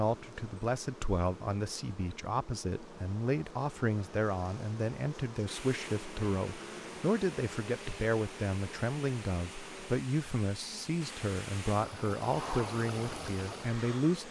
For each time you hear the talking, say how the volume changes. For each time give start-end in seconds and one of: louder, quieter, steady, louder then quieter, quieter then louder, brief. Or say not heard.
0.0-14.2 steady.